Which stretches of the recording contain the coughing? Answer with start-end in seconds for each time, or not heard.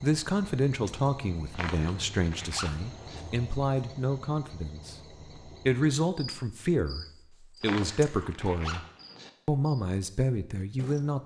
not heard.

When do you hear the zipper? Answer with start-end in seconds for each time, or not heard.
1.5-3.2, 7.6-9.3.